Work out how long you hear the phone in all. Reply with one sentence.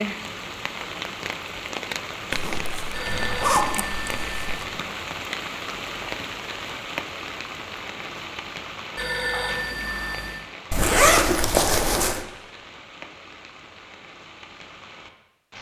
The phone can be heard for 3 seconds in total.